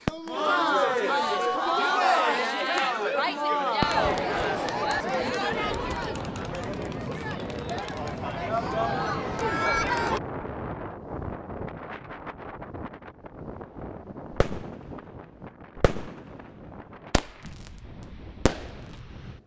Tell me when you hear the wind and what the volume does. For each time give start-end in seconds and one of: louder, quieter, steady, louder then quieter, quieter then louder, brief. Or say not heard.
5.5-19.4 quieter.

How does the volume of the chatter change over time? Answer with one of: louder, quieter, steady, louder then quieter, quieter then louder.
quieter then louder.